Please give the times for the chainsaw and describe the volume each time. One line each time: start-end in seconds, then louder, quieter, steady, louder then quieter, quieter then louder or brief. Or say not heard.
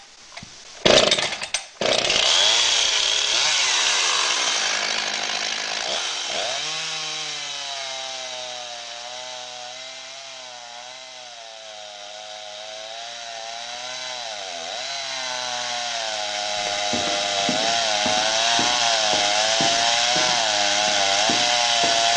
0.0-22.1 quieter then louder.